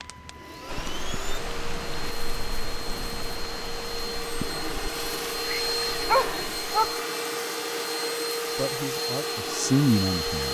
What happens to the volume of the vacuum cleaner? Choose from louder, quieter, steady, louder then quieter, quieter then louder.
louder.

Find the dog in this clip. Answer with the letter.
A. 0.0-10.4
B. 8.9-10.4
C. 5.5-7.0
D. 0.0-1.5
C.